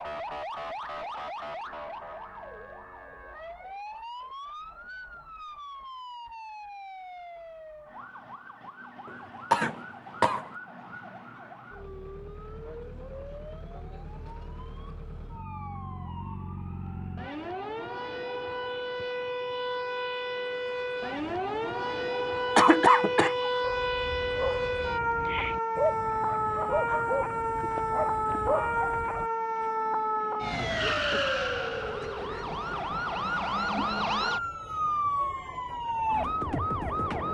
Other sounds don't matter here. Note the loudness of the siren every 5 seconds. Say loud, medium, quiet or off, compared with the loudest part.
medium, quiet, quiet, medium, loud, loud, loud, loud.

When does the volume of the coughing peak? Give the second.
23 s.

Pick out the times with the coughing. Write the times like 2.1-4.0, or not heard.
9.1-10.4, 22.6-23.4.